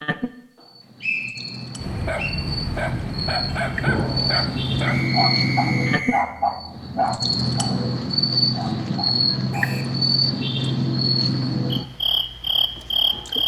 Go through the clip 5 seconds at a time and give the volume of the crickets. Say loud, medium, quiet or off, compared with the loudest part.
medium, loud, loud.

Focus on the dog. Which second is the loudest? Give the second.
6 s.